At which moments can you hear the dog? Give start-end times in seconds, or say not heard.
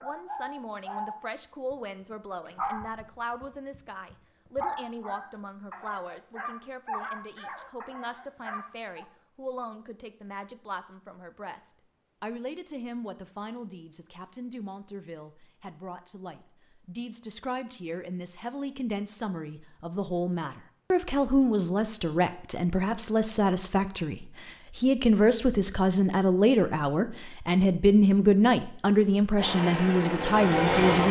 0.0-1.8, 2.5-9.1.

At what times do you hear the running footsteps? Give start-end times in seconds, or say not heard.
not heard.